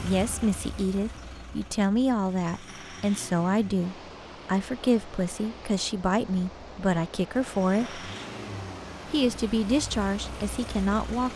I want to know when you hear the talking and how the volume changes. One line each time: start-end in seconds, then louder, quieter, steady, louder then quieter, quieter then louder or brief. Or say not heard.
0.0-8.1 steady
9.1-11.3 brief.